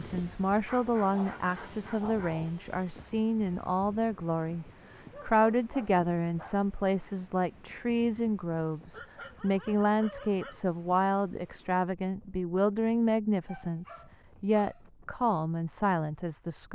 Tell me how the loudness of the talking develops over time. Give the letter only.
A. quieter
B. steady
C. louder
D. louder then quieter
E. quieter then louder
B.